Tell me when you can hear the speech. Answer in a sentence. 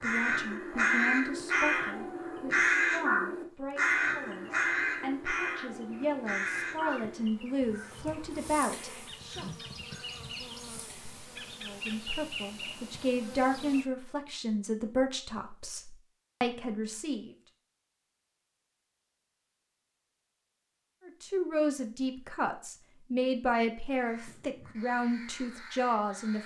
The speech can be heard from 0.0 to 9.4 s, from 11.6 to 17.4 s and from 21.1 to 26.4 s.